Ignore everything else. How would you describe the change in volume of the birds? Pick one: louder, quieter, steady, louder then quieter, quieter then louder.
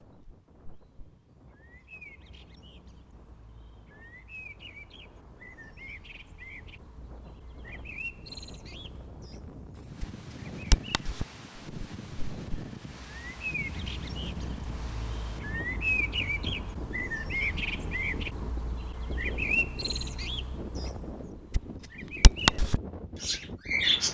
louder.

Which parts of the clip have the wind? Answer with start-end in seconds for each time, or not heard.
0.0-24.0.